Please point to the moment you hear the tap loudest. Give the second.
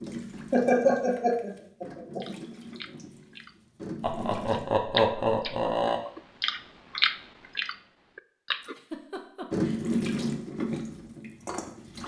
10 s.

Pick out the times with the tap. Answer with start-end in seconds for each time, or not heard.
0.0-4.8, 9.5-12.0.